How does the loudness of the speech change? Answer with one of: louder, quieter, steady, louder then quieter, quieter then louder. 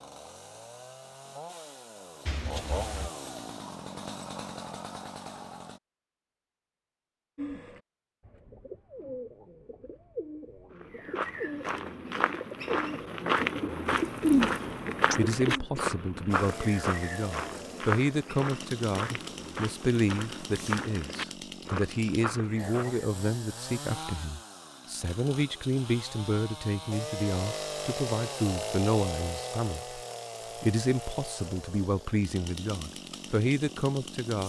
steady.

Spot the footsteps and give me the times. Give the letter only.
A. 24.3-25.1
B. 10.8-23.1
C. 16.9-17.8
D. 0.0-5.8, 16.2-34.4
B.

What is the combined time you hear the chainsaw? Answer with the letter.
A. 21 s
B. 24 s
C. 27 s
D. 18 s
B.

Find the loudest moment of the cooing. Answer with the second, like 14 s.
14 s.